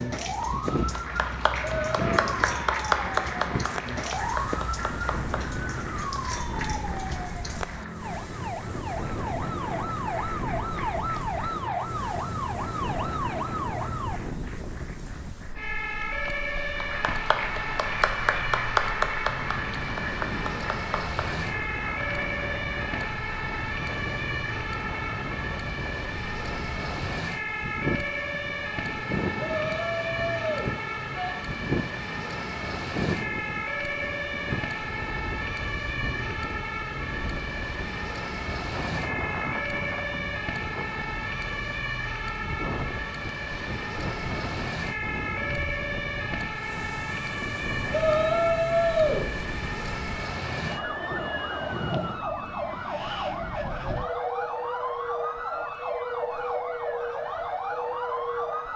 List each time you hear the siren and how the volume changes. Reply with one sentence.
You can hear the siren from 0.0 to 58.7 s, at a steady volume.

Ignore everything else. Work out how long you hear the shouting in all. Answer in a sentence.
The shouting can be heard for 4 seconds in total.